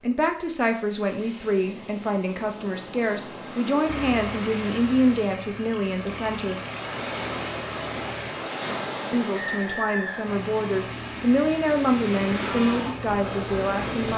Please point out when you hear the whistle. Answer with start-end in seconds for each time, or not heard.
9.4-10.9.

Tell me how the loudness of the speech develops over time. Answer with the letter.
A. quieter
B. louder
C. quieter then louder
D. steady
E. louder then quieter
D.